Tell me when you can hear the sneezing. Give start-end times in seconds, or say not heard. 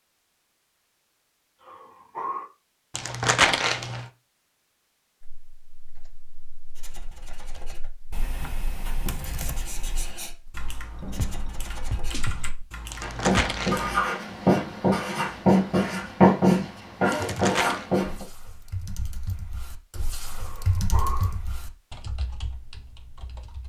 not heard.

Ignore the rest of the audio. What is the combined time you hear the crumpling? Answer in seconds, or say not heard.
3 s.